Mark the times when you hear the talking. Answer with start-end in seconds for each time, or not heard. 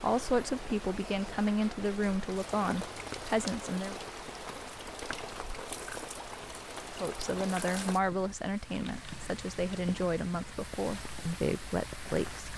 0.0-4.0, 7.0-12.5.